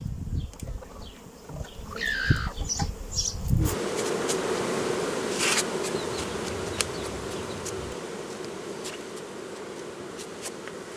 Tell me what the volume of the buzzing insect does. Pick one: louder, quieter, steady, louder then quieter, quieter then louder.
louder then quieter.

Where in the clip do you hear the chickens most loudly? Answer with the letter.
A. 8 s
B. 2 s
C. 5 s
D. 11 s
B.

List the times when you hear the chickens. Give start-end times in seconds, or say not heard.
0.6-2.7, 5.9-8.0.